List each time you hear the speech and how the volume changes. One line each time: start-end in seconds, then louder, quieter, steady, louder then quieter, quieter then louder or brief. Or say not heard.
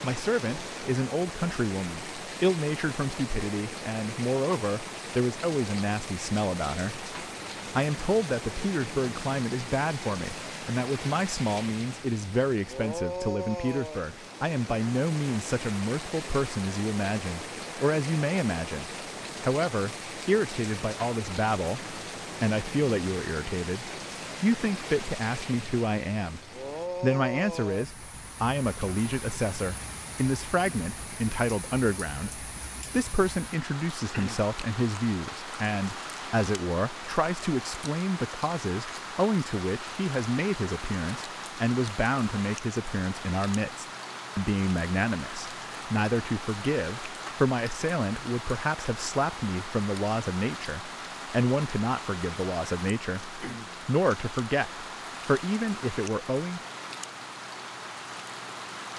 0.0-56.6 steady.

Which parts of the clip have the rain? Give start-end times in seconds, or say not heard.
0.0-58.9.